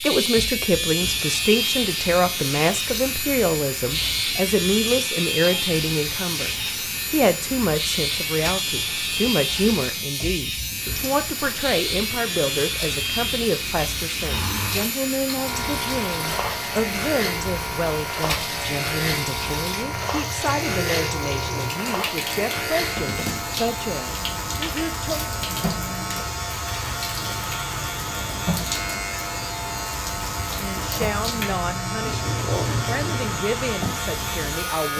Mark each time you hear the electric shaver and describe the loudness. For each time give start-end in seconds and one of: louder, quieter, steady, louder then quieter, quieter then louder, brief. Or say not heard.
0.0-34.9 steady.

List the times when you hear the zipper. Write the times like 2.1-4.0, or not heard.
14.2-14.9.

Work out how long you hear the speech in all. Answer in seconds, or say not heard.
29 s.